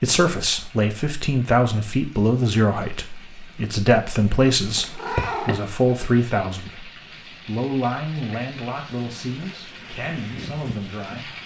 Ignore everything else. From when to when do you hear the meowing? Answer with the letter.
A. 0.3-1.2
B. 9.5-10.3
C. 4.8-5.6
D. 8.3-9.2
C.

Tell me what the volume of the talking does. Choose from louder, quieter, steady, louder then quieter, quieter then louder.
quieter.